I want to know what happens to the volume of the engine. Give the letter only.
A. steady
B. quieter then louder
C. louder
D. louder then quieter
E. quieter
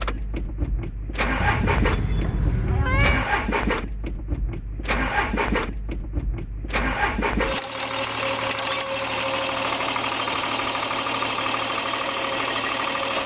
A.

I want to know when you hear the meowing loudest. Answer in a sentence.
The loudest moment of the meowing is at 3 seconds.